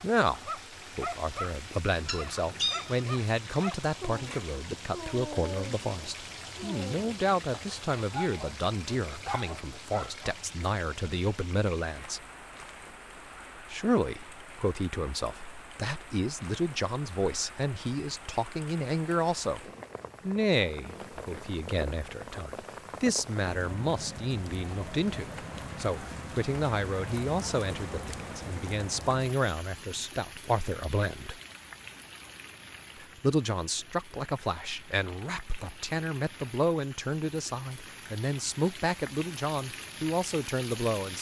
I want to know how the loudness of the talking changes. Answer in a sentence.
The volume of the talking stays about the same.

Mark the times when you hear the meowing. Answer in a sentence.
The meowing can be heard from 2.0 to 3.1 s.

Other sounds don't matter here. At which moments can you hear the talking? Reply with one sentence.
The talking can be heard from 0.0 to 12.2 s, from 13.7 to 19.6 s, from 20.2 to 31.4 s and from 33.0 to 41.1 s.